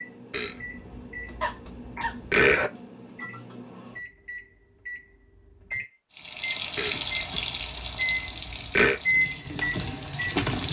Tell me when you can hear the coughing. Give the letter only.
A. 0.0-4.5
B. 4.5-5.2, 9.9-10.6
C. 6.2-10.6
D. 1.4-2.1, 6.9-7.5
D.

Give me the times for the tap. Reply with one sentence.
You can hear the tap from 6.2 to 10.6 s.